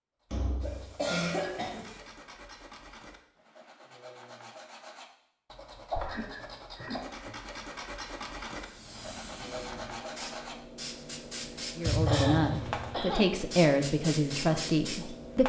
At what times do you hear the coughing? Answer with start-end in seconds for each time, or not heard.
0.6-2.0, 5.9-7.0, 12.1-13.2.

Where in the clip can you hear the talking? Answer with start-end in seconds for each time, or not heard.
11.8-15.4.